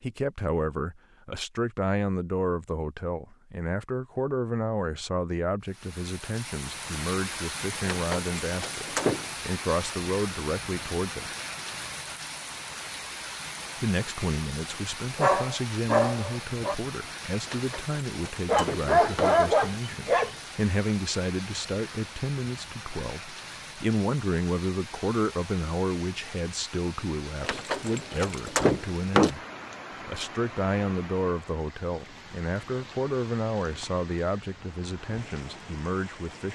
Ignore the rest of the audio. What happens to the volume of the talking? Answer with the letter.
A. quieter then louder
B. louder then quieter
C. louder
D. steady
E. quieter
D.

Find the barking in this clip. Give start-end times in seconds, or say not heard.
15.2-16.8, 18.4-20.4.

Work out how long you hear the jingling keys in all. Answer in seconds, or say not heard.
5 s.